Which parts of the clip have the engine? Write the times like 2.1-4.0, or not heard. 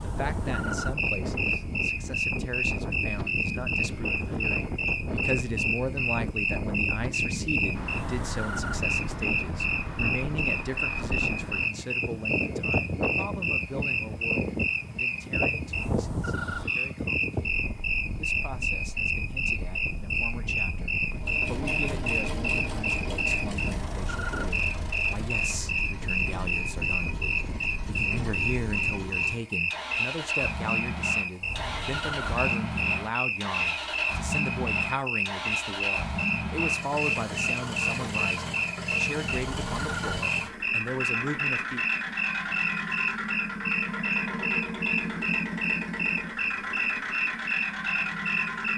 21.1-48.7.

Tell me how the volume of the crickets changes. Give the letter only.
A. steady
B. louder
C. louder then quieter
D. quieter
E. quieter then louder
A.